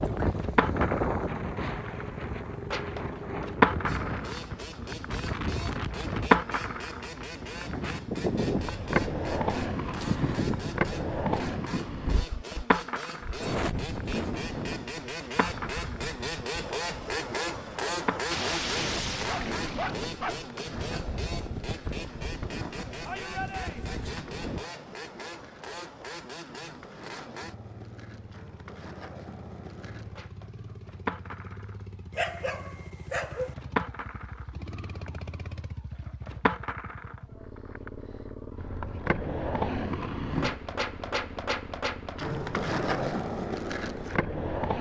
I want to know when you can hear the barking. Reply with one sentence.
The barking can be heard from 18.3 to 20.4 s and from 32.1 to 33.5 s.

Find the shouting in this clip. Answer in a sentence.
The shouting can be heard from 23.1 to 24.1 s.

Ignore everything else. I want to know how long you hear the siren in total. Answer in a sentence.
The siren can't be heard in this clip.